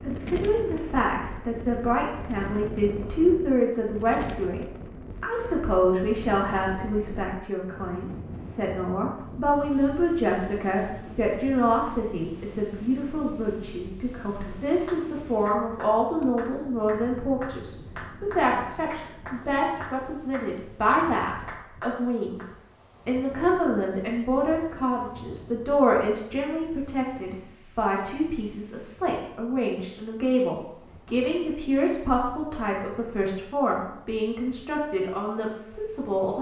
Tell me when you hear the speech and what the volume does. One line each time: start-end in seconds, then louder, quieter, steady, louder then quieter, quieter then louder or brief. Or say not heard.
0.0-36.3 steady.